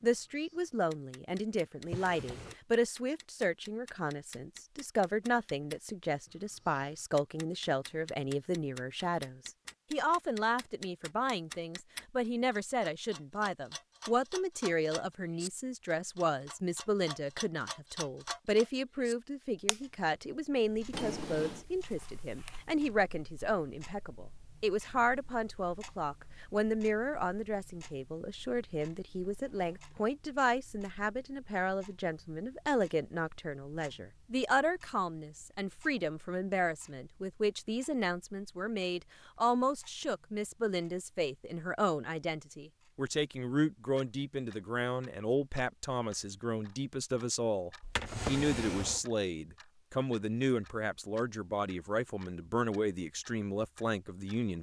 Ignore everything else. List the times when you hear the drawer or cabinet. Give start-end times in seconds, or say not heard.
1.8-2.6, 20.9-21.6, 47.8-49.0.